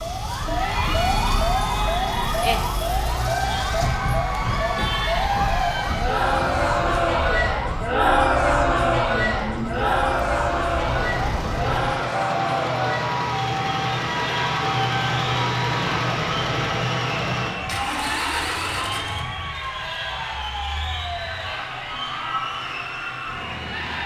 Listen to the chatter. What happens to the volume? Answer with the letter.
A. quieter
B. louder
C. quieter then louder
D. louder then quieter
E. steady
D.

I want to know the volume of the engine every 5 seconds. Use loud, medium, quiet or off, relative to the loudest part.
quiet, medium, loud, loud, off.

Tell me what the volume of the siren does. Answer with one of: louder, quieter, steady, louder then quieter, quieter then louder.
quieter.